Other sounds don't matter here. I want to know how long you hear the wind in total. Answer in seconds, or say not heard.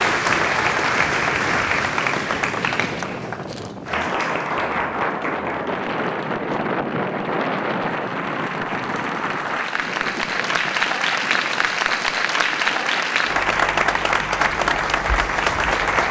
16 s.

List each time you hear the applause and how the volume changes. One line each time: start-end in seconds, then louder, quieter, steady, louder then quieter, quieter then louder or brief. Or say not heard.
0.0-16.0 quieter then louder.